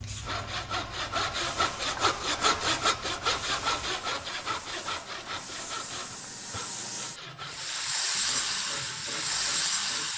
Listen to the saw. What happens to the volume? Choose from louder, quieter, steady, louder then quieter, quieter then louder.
quieter.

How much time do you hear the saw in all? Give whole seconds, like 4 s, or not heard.
10 s.